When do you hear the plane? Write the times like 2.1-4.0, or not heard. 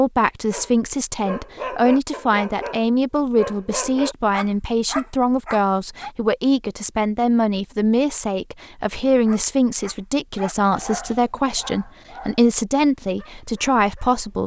not heard.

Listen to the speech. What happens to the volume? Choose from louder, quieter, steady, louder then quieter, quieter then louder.
steady.